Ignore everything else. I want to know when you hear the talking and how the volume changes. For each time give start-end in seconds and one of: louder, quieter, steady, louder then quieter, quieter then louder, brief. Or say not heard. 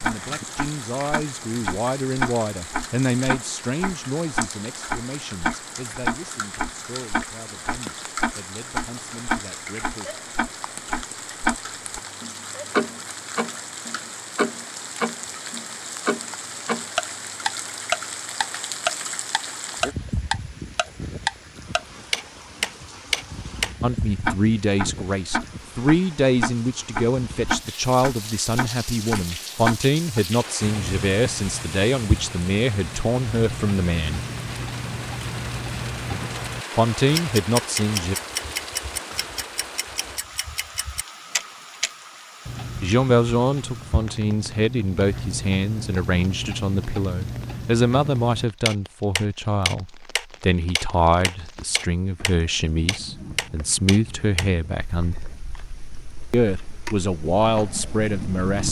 0.0-10.2 quieter
23.8-34.2 steady
36.8-38.1 brief
42.8-55.1 steady
56.3-58.6 brief.